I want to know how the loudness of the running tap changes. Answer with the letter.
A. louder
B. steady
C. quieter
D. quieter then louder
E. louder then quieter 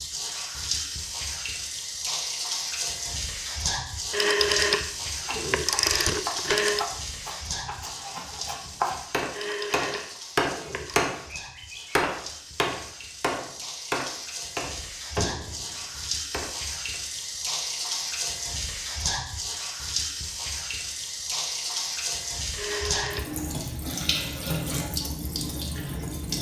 D.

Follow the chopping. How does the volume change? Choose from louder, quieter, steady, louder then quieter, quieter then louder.
louder then quieter.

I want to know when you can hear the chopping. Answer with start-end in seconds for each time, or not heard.
4.9-17.0.